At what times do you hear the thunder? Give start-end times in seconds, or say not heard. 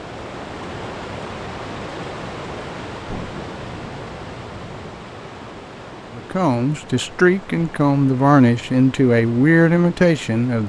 3.0-5.0.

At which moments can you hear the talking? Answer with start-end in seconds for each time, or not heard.
6.2-10.6.